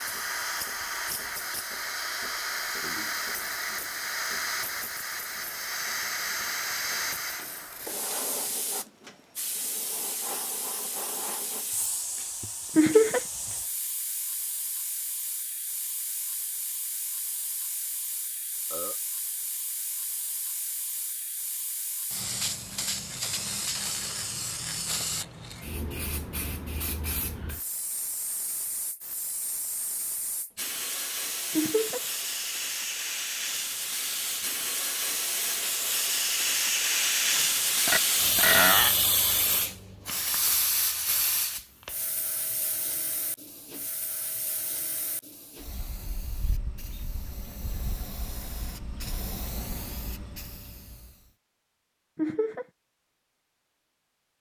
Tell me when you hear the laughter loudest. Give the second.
13 s.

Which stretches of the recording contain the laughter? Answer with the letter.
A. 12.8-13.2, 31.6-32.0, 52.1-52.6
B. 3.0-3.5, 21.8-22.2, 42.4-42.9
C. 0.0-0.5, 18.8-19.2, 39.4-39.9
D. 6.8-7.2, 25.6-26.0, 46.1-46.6
A.